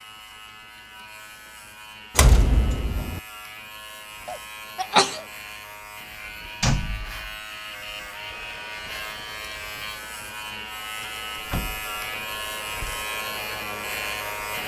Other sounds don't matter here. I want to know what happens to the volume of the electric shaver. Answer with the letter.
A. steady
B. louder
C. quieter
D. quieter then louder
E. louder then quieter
B.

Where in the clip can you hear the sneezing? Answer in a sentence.
The sneezing can be heard from 4.2 to 5.2 s.